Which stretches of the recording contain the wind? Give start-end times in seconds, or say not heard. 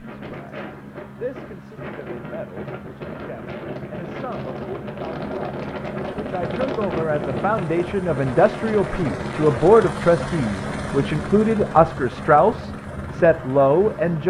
0.0-14.2.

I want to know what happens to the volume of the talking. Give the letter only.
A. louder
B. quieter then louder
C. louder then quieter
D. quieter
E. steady
A.